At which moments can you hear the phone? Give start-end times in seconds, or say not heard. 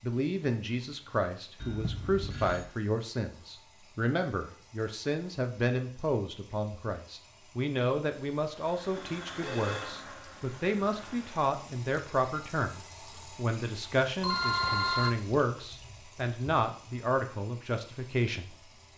1.6-2.6, 8.9-9.9, 14.2-15.2.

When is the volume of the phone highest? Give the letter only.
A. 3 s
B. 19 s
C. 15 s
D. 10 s
C.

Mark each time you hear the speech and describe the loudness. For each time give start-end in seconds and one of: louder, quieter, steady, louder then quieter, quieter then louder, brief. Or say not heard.
0.0-18.9 steady.